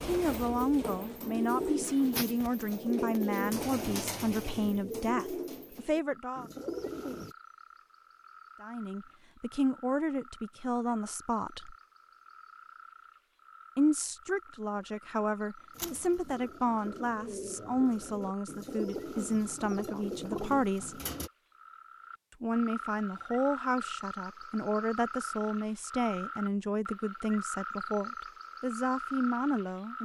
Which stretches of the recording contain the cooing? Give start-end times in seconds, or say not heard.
0.0-7.3, 15.8-21.3.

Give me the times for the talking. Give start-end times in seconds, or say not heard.
0.0-6.5, 8.6-11.8, 13.8-21.0, 22.4-30.0.